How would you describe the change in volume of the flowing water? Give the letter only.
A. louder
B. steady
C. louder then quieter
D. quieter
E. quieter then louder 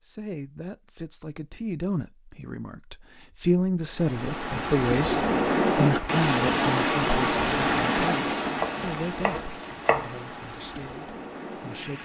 D.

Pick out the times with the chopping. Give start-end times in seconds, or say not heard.
8.6-10.2.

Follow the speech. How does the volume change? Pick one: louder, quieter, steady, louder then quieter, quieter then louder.
louder then quieter.